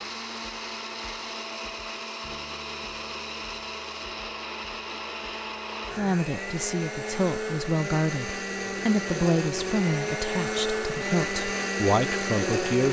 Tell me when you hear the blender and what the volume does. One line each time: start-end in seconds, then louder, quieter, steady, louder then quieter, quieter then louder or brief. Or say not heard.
0.0-12.8 louder.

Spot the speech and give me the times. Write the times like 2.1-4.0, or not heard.
6.0-12.8.